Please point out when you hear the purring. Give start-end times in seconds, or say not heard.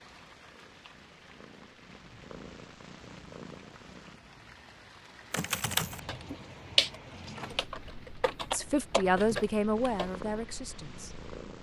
0.0-4.2, 9.8-11.5.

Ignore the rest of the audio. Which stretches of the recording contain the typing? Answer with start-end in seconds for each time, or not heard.
5.3-10.1.